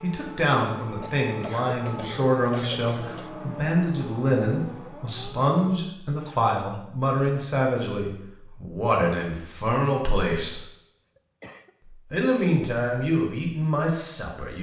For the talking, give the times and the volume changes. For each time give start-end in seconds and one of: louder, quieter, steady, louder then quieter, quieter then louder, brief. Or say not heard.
0.0-10.6 steady
12.1-14.5 brief.